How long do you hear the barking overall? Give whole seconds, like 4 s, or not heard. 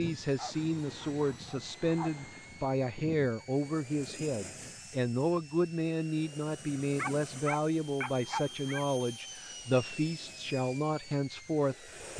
4 s.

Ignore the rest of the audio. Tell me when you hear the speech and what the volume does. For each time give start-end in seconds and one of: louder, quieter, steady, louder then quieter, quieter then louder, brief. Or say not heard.
0.0-12.1 steady.